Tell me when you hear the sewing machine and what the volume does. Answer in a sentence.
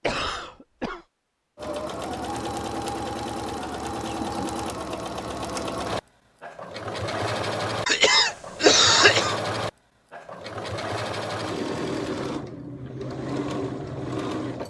You can hear the sewing machine from 1.6 to 14.6 s, at a steady volume.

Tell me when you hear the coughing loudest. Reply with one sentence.
The loudest moment of the coughing is at 9 seconds.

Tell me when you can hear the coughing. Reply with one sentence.
The coughing can be heard from 0.0 to 1.0 s and from 7.8 to 9.4 s.